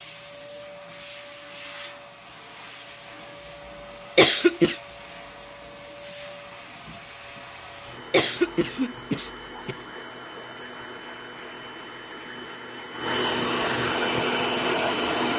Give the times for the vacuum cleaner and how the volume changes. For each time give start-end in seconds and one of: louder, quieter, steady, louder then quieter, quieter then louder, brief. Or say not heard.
0.0-15.3 louder.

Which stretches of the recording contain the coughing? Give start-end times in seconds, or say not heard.
4.2-4.8, 8.1-9.8.